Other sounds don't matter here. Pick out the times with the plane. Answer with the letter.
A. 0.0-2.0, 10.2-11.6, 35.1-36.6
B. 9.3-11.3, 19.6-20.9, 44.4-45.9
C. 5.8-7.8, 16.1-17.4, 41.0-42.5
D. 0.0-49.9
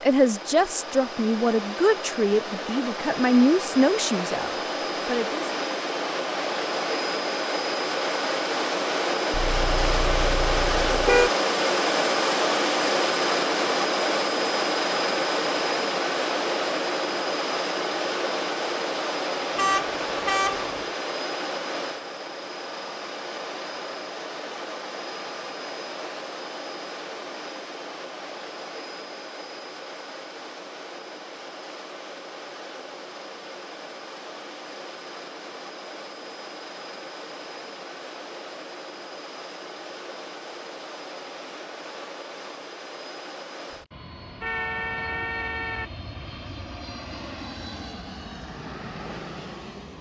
D.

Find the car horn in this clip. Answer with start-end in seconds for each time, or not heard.
9.3-11.3, 19.6-20.9, 44.4-45.9.